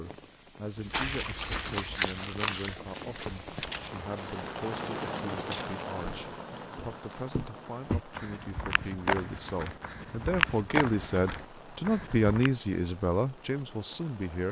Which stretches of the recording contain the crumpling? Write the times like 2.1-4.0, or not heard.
0.9-2.7.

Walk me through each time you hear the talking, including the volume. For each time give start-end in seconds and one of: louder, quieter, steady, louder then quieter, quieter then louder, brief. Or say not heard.
0.0-14.4 louder.